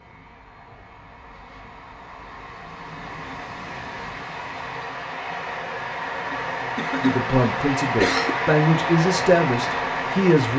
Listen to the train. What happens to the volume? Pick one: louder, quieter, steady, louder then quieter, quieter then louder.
louder.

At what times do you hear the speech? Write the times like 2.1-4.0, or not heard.
7.0-10.5.